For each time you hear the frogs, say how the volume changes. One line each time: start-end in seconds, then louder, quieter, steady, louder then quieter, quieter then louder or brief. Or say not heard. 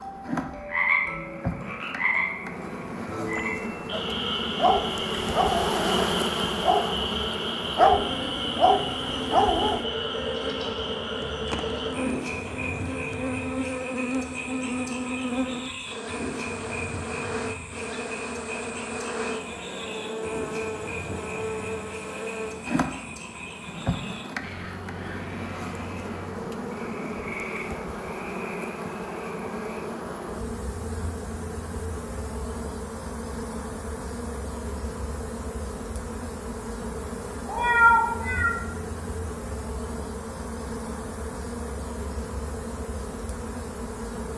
0.0-29.9 quieter.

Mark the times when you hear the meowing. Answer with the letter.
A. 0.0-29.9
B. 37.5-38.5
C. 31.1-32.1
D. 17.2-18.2
B.